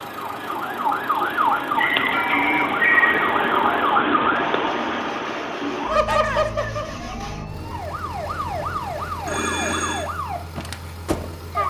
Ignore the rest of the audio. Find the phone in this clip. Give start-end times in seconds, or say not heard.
2.1-2.8, 9.2-10.1.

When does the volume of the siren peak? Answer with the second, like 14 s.
3 s.